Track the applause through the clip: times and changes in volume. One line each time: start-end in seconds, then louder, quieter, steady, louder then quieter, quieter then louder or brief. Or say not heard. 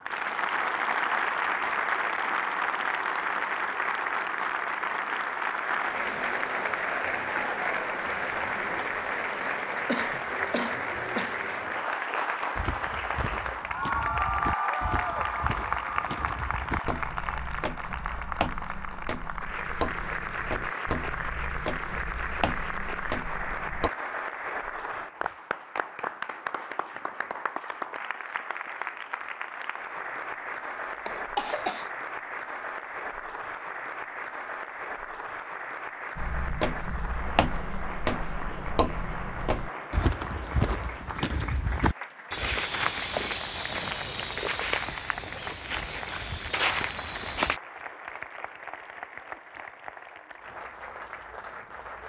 0.0-52.0 quieter.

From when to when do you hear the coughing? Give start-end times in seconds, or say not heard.
9.8-11.3, 30.9-31.9, 43.6-44.2.